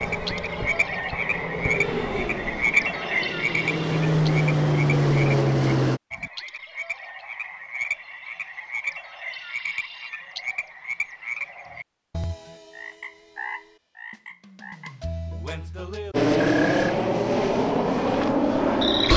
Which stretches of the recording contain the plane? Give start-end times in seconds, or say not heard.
0.0-6.0, 16.1-19.1.